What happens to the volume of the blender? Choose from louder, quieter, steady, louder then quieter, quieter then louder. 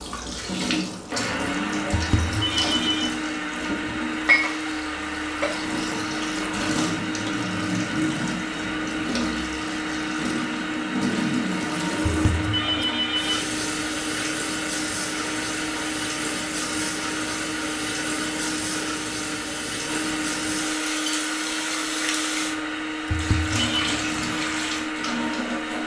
steady.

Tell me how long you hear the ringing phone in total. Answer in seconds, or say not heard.
3 s.